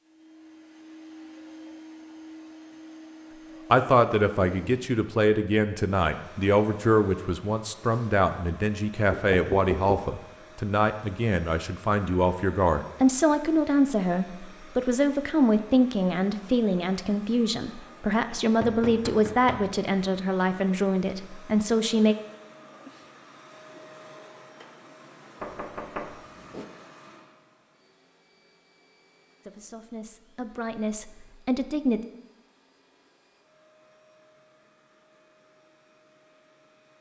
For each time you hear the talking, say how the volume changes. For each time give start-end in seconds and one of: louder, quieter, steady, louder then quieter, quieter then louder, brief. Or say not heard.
3.7-22.1 steady
29.4-32.0 brief.